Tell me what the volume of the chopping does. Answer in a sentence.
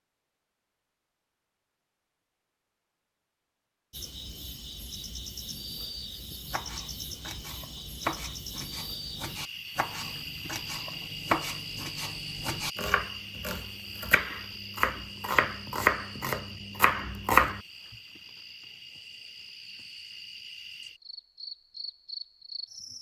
The loudness of the chopping goes up.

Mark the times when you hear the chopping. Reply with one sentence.
You can hear the chopping from 6.5 to 17.6 s.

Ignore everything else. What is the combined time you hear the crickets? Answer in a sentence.
You can hear the crickets for 19 seconds altogether.